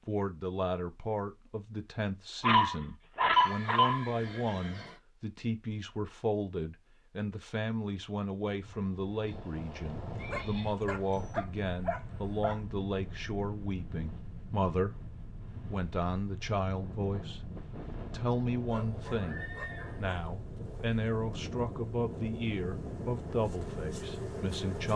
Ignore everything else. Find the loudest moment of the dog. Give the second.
3 s.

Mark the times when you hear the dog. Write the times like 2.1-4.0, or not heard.
2.4-4.0, 10.3-12.6, 18.6-20.3.